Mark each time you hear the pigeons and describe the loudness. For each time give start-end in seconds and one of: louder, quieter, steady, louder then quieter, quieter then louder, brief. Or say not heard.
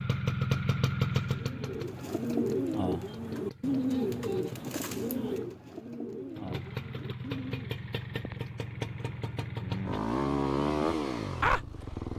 1.0-7.8 quieter.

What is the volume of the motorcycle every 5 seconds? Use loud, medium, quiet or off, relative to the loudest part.
loud, medium, loud.